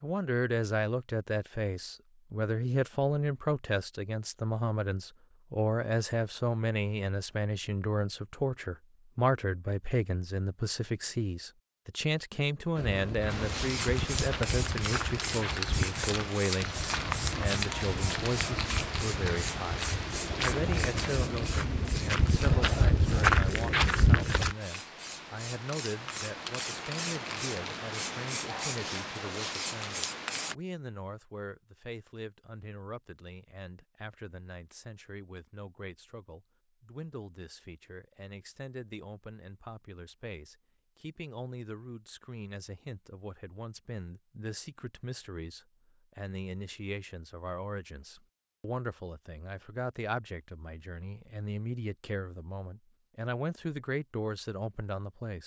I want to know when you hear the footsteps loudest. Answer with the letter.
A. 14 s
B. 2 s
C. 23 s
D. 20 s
C.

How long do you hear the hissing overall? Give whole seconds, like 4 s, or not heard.
17 s.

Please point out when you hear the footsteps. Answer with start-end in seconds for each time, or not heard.
12.8-24.6.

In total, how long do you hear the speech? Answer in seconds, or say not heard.
55 s.